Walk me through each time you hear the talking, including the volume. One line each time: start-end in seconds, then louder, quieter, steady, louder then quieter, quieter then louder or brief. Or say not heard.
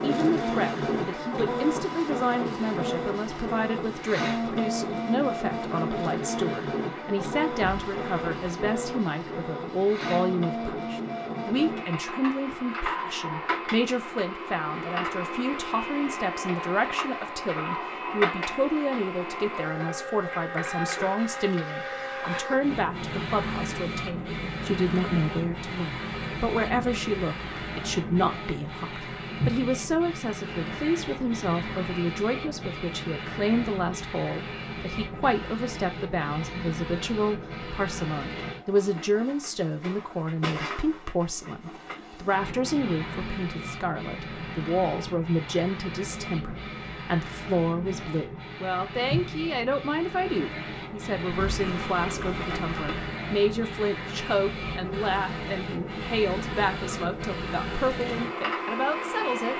0.0-59.5 steady.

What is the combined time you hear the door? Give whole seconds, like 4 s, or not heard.
3 s.